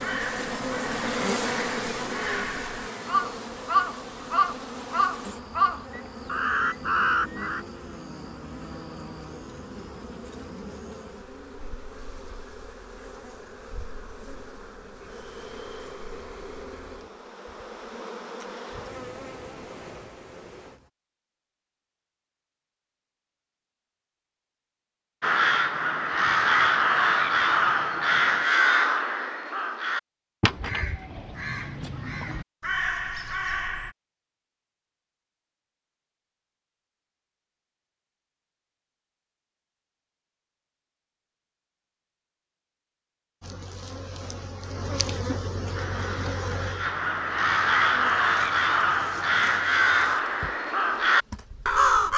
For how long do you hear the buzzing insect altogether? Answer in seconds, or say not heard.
29 s.